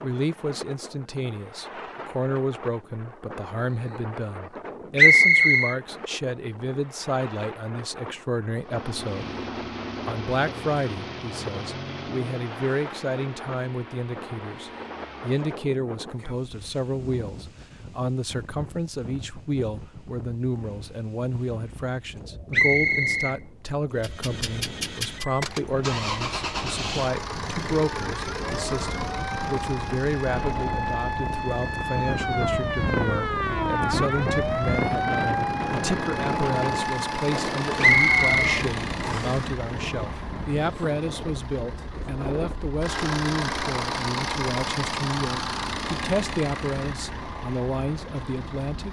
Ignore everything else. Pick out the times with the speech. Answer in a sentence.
You can hear the speech from 0.0 to 9.3 s and from 10.1 to 48.8 s.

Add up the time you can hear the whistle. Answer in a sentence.
The whistle can be heard for 3 seconds in total.